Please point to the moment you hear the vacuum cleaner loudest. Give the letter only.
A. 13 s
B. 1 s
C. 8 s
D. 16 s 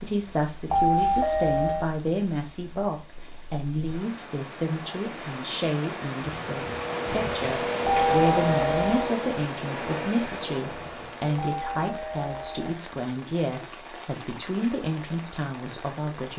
C.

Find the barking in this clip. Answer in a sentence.
You can't hear the barking here.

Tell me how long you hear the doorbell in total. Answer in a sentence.
The doorbell can be heard for 4 seconds in total.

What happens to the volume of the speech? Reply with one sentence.
The volume of the speech stays about the same.